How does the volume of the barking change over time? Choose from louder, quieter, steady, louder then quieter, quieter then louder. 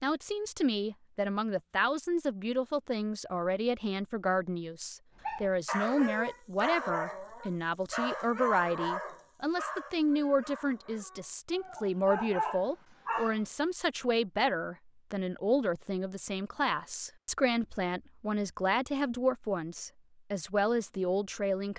quieter then louder.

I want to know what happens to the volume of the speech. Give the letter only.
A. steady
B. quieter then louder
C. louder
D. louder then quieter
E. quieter
A.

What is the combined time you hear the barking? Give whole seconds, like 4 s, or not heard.
8 s.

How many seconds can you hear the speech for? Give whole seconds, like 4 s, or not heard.
22 s.